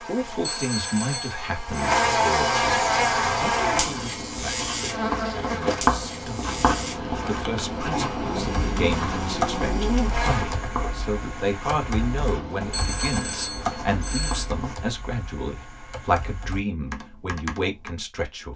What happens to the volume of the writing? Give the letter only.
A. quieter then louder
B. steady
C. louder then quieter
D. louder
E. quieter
C.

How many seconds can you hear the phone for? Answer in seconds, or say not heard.
3 s.